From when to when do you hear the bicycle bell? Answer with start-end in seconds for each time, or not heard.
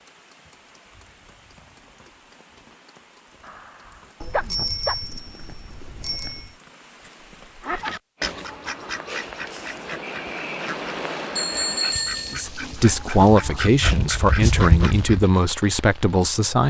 4.2-6.5, 11.3-12.4.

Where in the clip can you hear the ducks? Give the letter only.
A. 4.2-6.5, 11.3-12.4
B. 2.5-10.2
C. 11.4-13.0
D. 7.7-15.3
D.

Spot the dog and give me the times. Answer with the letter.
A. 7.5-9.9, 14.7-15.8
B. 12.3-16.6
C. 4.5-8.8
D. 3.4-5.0
D.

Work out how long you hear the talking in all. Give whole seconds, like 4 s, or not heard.
4 s.